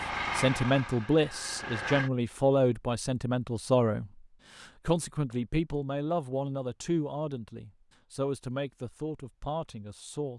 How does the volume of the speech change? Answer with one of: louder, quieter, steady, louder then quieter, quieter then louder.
quieter.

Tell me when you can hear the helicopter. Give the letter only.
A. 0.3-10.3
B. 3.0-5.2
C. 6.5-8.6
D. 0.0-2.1
D.